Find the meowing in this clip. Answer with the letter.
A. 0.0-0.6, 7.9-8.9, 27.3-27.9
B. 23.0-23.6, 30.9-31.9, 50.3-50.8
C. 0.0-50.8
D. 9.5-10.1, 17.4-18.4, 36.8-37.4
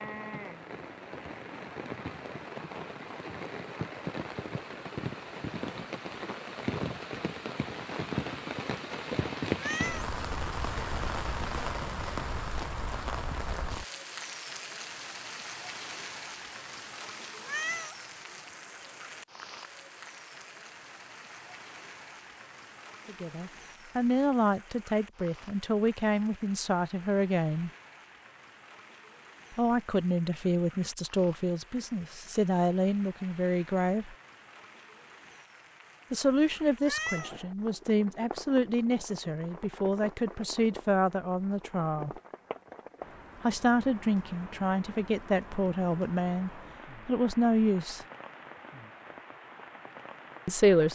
D.